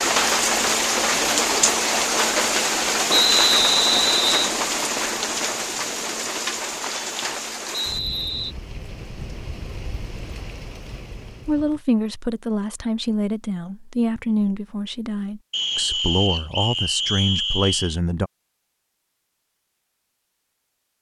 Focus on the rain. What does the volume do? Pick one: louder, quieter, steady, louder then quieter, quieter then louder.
quieter.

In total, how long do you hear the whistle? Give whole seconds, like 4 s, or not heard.
5 s.